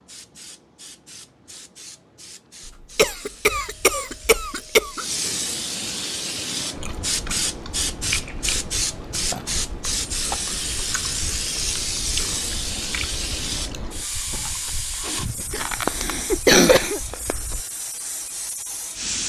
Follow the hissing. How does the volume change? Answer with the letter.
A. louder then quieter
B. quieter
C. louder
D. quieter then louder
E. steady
A.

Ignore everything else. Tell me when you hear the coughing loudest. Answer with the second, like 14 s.
17 s.